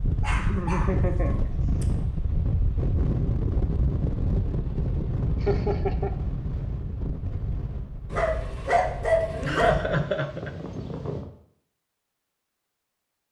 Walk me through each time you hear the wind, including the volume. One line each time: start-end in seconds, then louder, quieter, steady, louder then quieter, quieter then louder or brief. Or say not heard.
0.0-11.2 quieter.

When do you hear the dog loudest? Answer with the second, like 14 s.
9 s.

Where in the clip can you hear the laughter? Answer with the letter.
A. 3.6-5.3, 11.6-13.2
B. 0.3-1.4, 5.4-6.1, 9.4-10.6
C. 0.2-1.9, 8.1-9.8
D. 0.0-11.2
B.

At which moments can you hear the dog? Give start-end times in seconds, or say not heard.
0.2-1.9, 8.1-9.8.